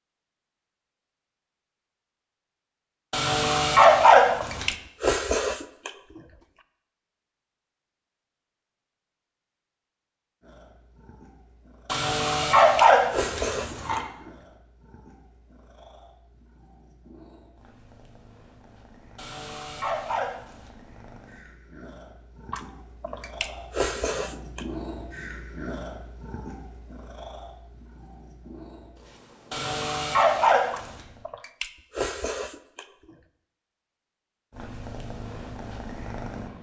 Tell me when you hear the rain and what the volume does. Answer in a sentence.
You can't hear the rain here.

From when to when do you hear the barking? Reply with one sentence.
You can hear the barking from 3.1 to 4.7 s, from 11.8 to 14.1 s, from 19.1 to 20.7 s and from 29.5 to 31.0 s.